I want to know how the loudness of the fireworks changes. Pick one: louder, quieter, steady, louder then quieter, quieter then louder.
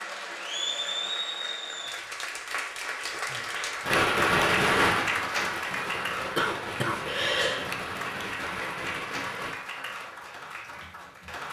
quieter.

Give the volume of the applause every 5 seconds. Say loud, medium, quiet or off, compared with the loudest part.
loud, loud, medium.